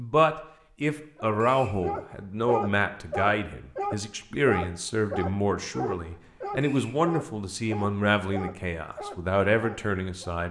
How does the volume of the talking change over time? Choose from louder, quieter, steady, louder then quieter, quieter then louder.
steady.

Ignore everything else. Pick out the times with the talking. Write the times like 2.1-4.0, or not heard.
0.0-10.4.